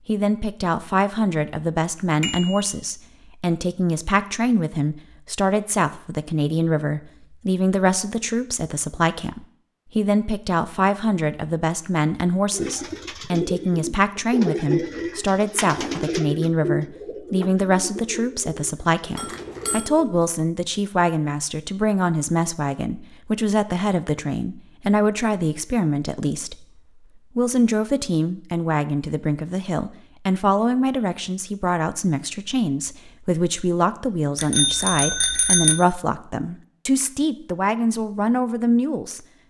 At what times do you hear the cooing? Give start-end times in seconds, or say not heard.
12.5-20.2.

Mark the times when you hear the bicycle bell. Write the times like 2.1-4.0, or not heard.
2.2-2.8, 19.1-19.9, 34.4-35.8.